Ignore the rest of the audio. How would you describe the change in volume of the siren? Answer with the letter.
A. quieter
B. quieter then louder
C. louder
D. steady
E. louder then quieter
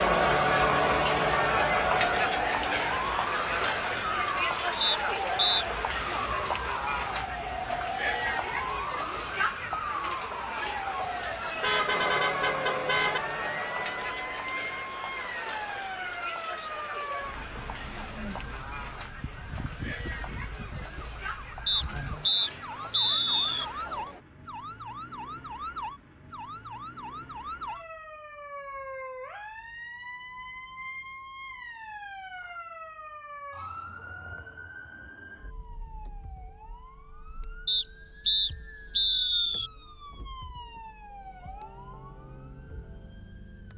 A.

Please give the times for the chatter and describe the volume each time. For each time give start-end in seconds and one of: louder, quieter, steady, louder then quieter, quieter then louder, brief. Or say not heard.
0.0-24.2 quieter.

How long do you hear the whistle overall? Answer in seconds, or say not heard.
5 s.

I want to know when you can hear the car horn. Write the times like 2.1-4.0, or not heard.
11.6-13.2.